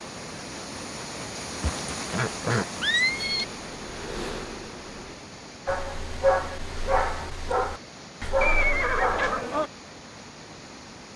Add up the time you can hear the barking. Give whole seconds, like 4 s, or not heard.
4 s.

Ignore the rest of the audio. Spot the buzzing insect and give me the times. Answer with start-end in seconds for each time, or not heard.
3.4-5.2.